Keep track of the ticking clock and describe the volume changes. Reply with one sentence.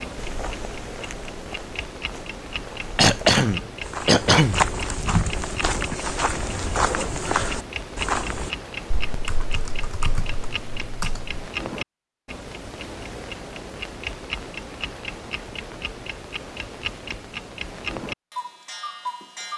The volume of the ticking clock stays about the same.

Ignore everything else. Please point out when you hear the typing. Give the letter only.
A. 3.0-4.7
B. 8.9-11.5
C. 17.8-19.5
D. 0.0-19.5
B.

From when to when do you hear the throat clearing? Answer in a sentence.
You can hear the throat clearing from 3.0 to 4.7 s.